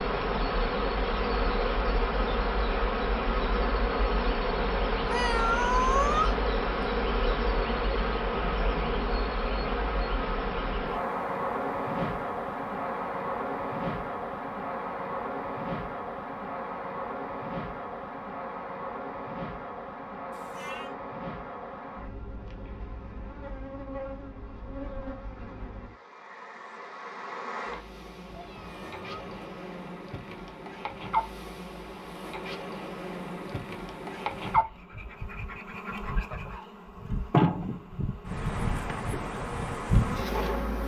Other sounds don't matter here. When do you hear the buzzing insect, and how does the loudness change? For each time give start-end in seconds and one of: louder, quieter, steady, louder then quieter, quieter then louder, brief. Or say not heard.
0.0-40.8 quieter then louder.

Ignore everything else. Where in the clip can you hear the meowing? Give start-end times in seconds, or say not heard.
5.0-6.9, 20.3-20.9, 28.2-29.4.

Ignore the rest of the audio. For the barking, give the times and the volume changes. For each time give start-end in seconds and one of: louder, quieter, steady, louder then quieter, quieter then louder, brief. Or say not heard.
not heard.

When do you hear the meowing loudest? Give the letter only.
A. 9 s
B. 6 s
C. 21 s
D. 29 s
B.